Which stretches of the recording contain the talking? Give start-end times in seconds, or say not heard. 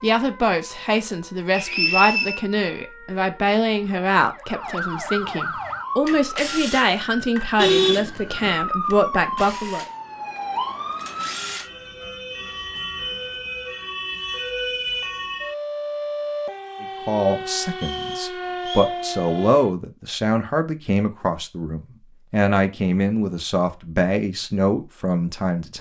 0.0-9.8, 16.8-25.7.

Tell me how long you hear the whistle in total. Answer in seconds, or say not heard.
2 s.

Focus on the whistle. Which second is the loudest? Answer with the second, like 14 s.
2 s.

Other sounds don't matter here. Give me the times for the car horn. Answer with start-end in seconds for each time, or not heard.
7.5-8.6.